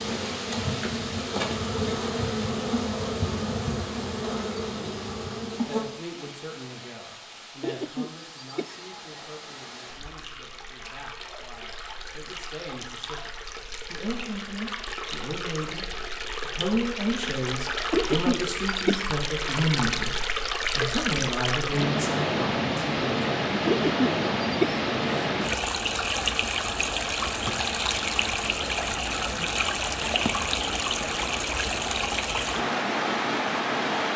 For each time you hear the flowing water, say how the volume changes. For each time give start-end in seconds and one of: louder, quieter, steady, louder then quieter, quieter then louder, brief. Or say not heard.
0.0-34.1 louder.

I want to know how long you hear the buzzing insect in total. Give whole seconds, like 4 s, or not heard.
6 s.